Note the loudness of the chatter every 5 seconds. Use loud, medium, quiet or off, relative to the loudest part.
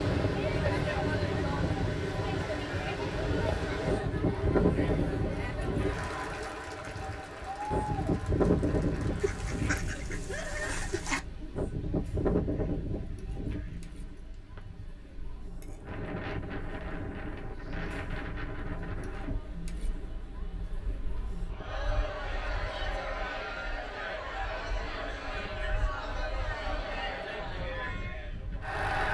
loud, loud, quiet, quiet, loud, loud.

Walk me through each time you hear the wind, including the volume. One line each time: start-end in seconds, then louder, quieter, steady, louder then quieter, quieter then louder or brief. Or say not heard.
0.0-29.0 quieter.